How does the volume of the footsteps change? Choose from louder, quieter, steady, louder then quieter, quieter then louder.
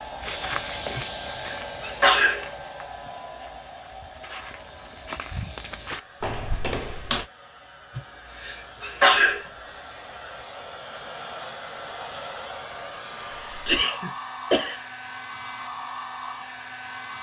quieter then louder.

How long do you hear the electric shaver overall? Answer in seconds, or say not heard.
not heard.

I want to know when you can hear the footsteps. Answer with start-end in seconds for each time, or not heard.
0.2-7.2.